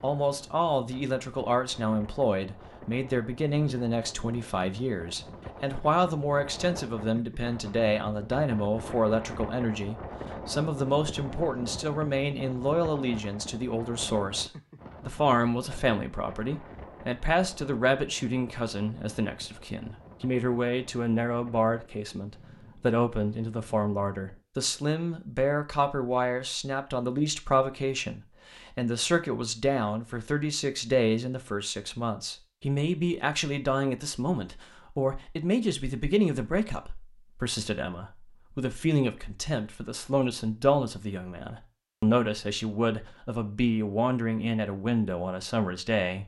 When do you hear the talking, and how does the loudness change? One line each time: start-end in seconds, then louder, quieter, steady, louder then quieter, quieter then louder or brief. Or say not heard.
0.0-46.2 steady.